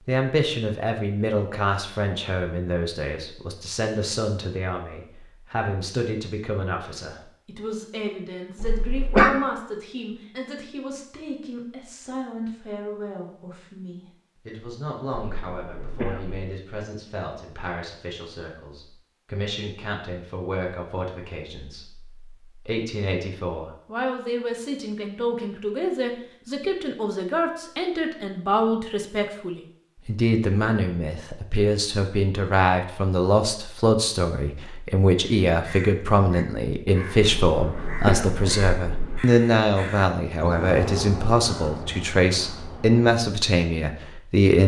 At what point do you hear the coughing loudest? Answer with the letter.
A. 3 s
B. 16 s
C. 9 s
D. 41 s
C.